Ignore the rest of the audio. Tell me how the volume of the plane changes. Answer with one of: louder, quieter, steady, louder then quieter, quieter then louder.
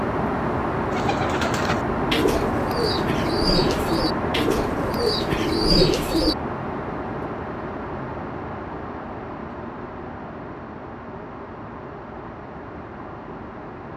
quieter.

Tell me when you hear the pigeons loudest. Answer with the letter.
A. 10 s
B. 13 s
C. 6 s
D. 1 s
C.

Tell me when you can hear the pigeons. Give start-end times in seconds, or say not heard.
0.9-6.3.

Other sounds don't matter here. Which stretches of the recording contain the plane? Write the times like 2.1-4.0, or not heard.
0.0-13.9.